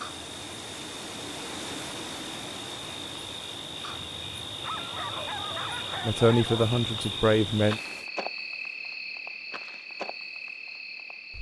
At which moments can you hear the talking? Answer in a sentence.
The talking can be heard from 6.0 to 7.8 s.